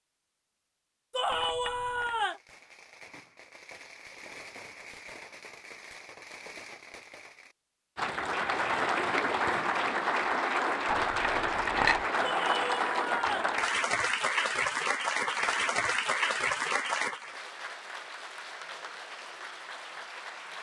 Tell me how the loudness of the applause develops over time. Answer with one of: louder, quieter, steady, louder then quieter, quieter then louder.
quieter.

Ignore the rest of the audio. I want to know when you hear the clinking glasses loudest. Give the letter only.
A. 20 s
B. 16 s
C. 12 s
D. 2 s
C.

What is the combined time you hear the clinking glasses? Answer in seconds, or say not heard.
2 s.